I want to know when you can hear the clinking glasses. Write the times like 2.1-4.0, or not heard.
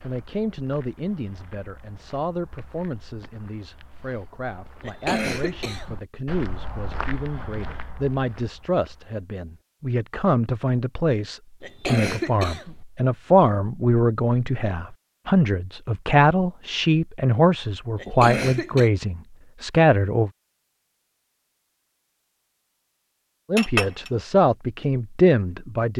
23.6-24.1.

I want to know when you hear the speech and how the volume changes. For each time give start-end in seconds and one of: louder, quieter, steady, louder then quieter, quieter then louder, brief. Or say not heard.
0.0-20.3 louder
23.5-25.9 brief.